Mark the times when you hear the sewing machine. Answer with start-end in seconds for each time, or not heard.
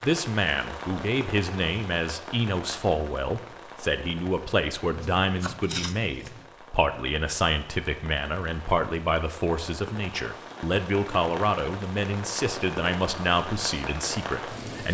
not heard.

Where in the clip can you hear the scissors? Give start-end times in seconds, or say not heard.
5.0-6.5.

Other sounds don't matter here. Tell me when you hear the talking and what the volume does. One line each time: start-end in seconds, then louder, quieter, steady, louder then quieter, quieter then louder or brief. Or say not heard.
0.0-14.8 steady.